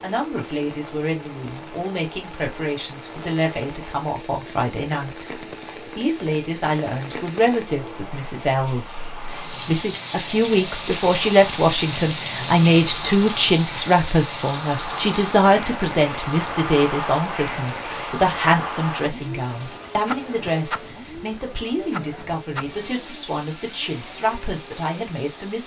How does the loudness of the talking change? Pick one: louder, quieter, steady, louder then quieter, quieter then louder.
louder then quieter.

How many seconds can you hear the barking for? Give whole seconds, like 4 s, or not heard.
not heard.